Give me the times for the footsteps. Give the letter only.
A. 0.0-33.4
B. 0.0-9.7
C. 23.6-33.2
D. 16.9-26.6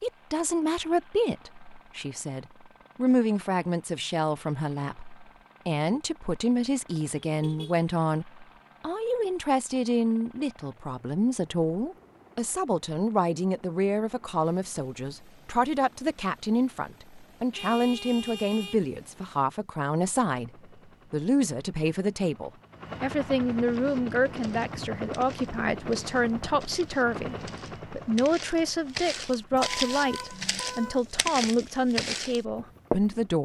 C.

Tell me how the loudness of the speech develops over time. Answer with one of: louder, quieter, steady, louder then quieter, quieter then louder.
steady.